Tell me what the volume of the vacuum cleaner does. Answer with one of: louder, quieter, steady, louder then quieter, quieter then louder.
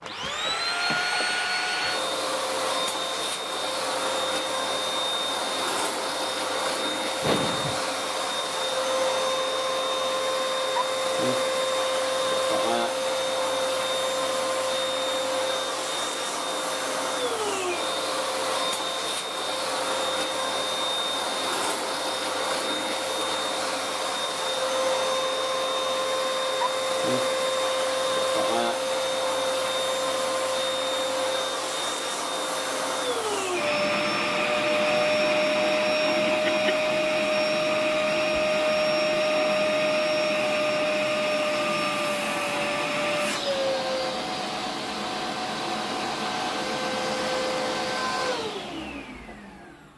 steady.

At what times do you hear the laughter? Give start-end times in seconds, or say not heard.
7.2-7.8, 36.0-36.8.